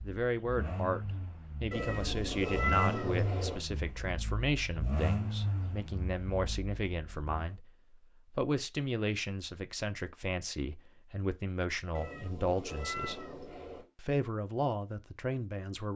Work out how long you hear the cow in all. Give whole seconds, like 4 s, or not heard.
not heard.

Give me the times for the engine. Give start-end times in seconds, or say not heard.
0.0-7.5.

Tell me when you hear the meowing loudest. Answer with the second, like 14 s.
3 s.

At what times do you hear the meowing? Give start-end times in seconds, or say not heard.
1.7-3.6, 11.9-13.9.